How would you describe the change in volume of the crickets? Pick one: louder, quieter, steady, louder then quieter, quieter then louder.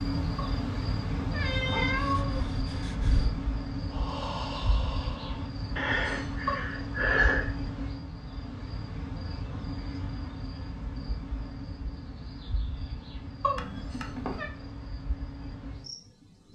quieter.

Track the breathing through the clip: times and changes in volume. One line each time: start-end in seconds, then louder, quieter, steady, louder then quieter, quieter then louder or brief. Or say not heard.
1.9-7.5 louder.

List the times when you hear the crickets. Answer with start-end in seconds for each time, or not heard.
0.0-16.4.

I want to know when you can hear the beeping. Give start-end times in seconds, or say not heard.
13.6-14.4.